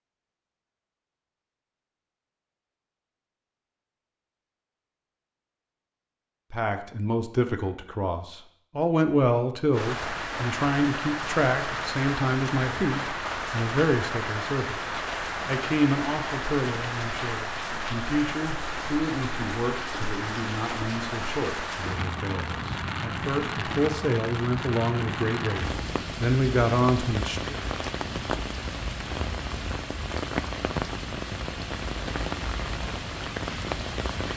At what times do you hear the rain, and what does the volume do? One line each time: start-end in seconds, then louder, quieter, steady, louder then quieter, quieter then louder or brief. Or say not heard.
9.7-34.3 steady.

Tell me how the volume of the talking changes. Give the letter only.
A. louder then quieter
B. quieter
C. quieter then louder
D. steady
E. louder
C.